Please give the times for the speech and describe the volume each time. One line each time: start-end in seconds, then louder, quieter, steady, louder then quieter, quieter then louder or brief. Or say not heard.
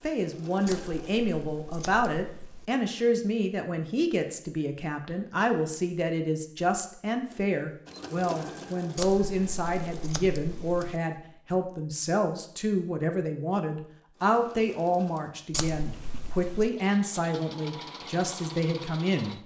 0.0-19.4 steady.